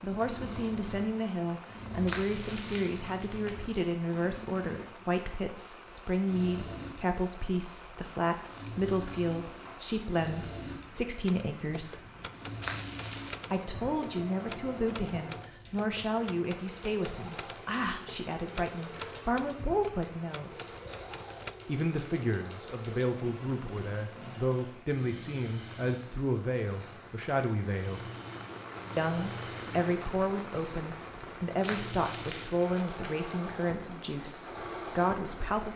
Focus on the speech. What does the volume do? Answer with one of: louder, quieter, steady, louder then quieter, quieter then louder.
steady.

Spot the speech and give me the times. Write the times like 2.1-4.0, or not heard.
0.0-12.1, 13.5-20.6, 21.6-28.1, 28.9-35.7.